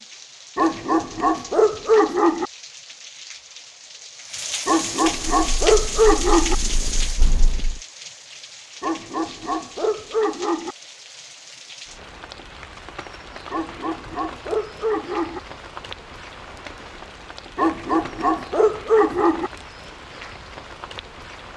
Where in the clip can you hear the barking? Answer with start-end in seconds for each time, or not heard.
0.6-2.5, 4.7-6.5, 8.8-10.8, 13.5-15.4, 17.6-19.5.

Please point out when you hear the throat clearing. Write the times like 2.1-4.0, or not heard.
not heard.